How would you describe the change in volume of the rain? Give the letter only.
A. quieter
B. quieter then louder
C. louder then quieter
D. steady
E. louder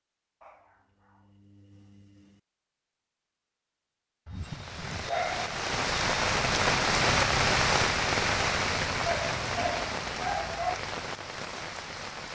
C.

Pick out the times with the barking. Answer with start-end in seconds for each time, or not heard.
0.4-2.4, 4.2-5.6, 9.1-10.8.